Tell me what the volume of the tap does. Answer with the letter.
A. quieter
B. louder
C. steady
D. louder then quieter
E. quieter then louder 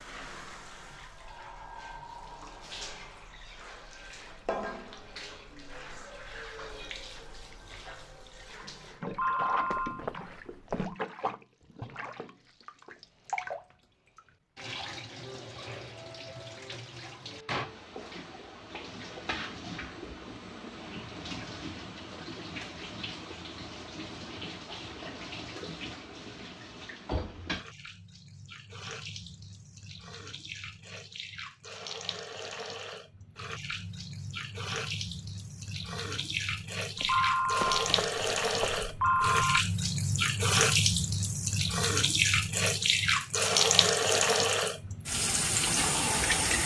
B.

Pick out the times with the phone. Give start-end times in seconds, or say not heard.
9.1-10.9, 37.0-39.6.